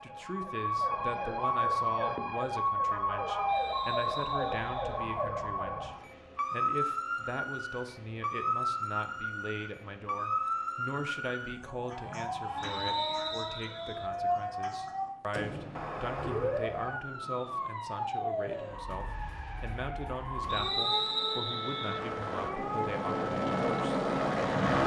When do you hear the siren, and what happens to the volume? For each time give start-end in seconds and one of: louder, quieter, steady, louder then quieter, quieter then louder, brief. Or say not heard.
0.0-24.8 quieter.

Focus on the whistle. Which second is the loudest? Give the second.
21 s.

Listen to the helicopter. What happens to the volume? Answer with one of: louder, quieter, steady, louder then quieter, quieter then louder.
louder.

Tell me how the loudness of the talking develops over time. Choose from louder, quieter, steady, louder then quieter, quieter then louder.
steady.